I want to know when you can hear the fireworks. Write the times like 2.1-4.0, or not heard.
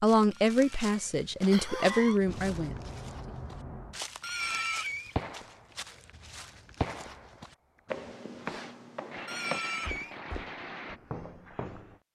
1.4-11.0.